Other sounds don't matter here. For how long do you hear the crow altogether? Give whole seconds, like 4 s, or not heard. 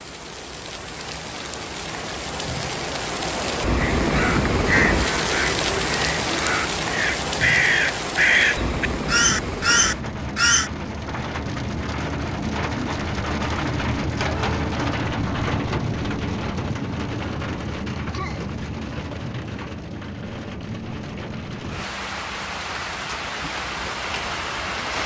7 s.